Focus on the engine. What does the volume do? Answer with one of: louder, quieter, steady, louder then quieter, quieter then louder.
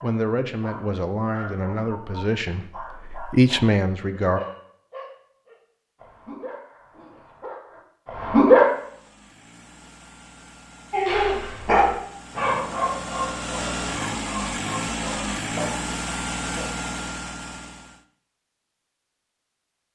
louder.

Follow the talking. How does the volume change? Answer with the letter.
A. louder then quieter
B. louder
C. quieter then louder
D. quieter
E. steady
C.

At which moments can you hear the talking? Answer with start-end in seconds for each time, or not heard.
0.0-4.4.